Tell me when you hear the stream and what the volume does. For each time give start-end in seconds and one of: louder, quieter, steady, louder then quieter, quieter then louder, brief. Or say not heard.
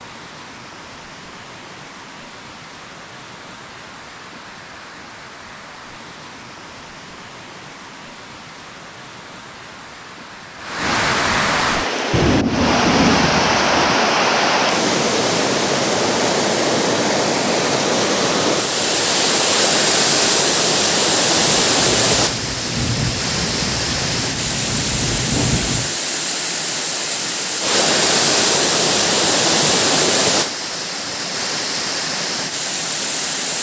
0.0-33.5 louder.